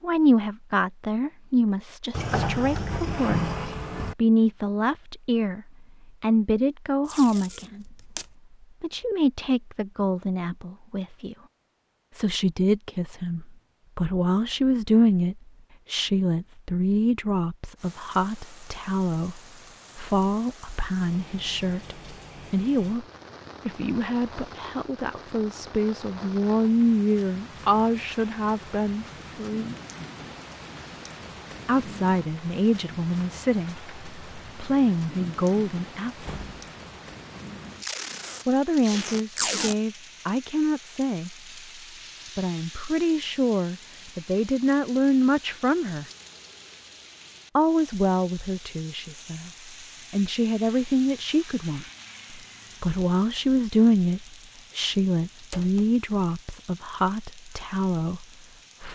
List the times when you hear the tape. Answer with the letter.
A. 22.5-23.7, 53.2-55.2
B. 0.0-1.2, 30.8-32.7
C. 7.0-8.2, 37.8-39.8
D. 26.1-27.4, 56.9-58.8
C.